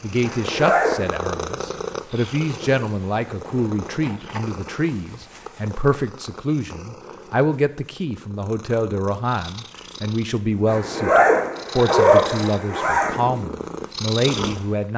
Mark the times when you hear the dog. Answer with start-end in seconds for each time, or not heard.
not heard.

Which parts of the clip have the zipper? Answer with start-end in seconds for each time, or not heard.
0.2-1.0, 10.7-13.2.